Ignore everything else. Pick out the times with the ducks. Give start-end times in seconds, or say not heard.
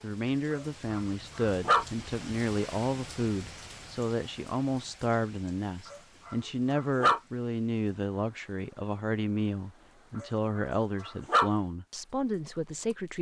not heard.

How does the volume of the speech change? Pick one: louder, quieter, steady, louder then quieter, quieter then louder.
steady.